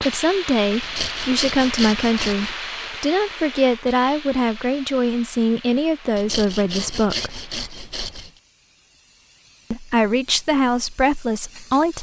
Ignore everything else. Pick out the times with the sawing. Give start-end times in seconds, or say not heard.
0.8-2.5, 6.2-8.3.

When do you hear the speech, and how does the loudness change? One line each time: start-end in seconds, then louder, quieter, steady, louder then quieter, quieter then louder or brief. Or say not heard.
0.0-7.3 steady
9.7-11.9 brief.